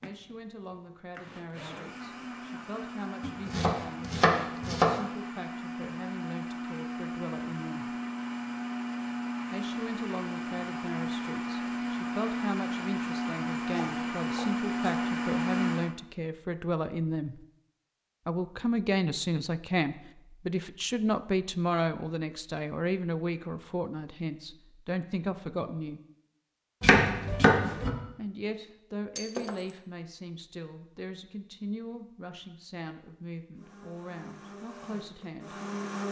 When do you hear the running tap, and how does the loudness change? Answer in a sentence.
The running tap can't be heard in this clip.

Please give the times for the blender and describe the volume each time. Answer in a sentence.
You can hear the blender from 0.0 to 15.9 s, getting louder; and briefly from 33.5 to 36.0 s.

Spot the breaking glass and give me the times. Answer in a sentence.
You can hear the breaking glass from 29.1 to 29.8 s.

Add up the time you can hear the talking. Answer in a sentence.
You can hear the talking for 31 seconds altogether.